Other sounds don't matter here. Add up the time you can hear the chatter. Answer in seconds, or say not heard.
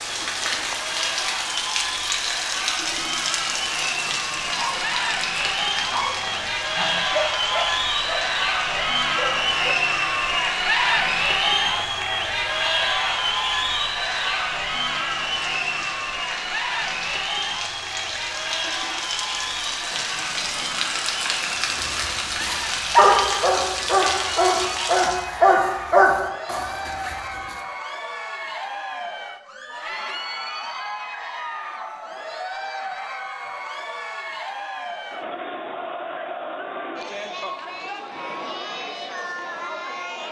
40 s.